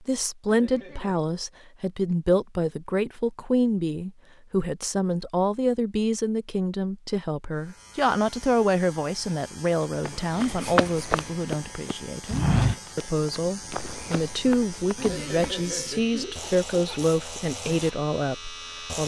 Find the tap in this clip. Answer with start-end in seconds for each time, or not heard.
not heard.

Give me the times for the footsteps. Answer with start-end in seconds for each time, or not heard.
10.0-15.6.